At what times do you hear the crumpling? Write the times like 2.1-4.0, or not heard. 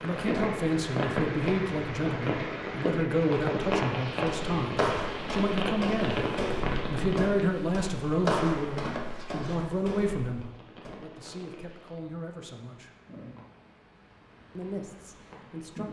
8.8-9.6.